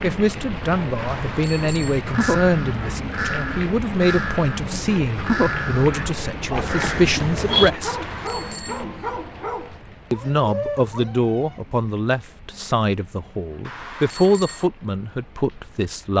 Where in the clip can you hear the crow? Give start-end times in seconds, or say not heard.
1.9-7.7.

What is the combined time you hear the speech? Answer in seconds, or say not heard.
14 s.